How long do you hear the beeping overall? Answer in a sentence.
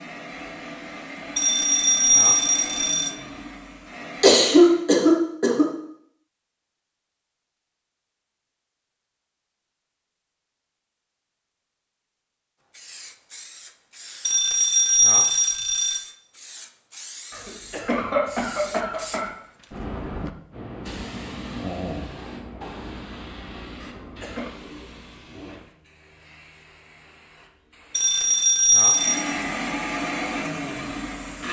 You can hear the beeping for 5 seconds altogether.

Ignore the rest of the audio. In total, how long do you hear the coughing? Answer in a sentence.
You can hear the coughing for 4 seconds altogether.